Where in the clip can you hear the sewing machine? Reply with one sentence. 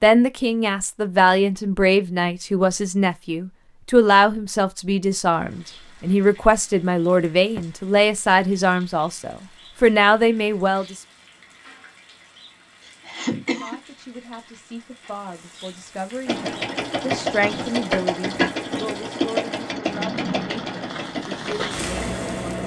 The sewing machine can be heard from 16.2 to 22.6 s.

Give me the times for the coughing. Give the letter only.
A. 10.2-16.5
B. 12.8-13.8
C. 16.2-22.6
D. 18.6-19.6
B.